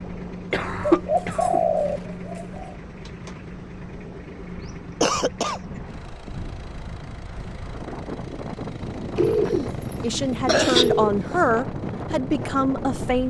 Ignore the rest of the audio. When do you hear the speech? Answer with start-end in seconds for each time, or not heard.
10.0-13.2.